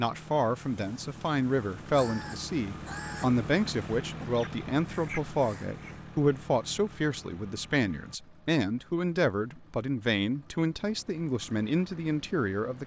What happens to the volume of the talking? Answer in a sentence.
The volume of the talking stays about the same.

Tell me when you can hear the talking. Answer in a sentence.
You can hear the talking from 0.0 to 12.8 s.